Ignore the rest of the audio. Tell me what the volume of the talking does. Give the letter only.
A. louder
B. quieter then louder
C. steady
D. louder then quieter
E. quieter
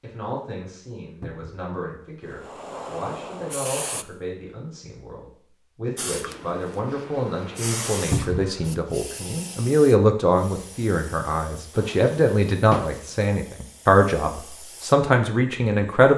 A.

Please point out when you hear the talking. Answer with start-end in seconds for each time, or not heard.
0.0-16.1.